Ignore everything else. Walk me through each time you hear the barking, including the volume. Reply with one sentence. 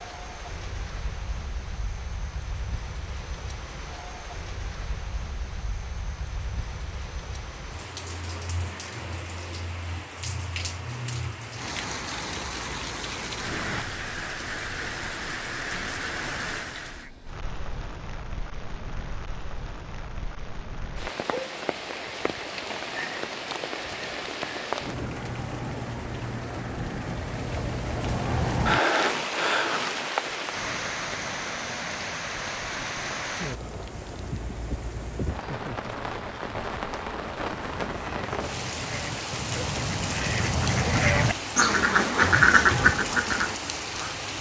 You can't hear the barking here.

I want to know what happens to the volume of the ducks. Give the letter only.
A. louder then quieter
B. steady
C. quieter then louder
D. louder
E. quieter
D.